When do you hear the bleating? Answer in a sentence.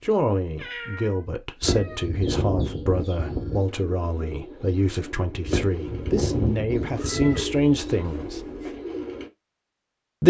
The bleating can be heard from 1.6 to 3.6 s and from 5.5 to 7.5 s.